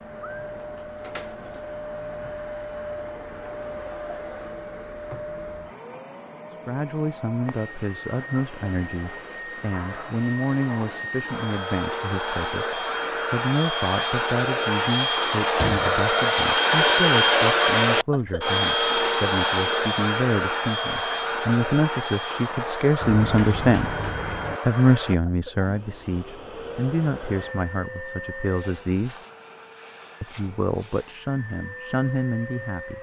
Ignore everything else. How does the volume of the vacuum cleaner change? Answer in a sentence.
The volume of the vacuum cleaner goes up, then down.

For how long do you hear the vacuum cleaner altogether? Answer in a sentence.
You can hear the vacuum cleaner for 33 seconds altogether.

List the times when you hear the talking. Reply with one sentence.
You can hear the talking from 6.5 to 23.9 s, from 24.6 to 29.2 s and from 30.2 to 32.9 s.